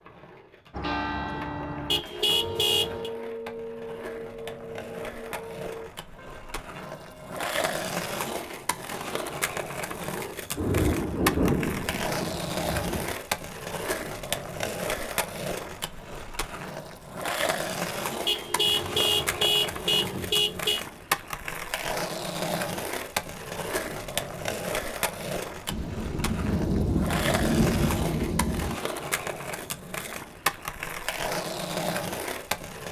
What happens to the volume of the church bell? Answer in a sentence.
The volume of the church bell goes down.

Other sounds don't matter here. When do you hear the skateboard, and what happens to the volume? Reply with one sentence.
The skateboard can be heard from 0.0 to 32.8 s, getting louder.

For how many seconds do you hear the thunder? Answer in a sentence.
The thunder can be heard for 6 seconds in total.